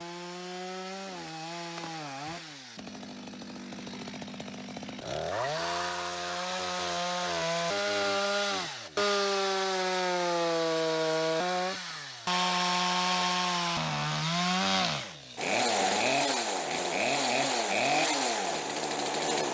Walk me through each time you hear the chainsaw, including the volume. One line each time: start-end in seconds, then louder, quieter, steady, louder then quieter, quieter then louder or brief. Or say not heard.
0.0-19.4 louder.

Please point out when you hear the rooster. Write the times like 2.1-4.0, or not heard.
5.2-6.7.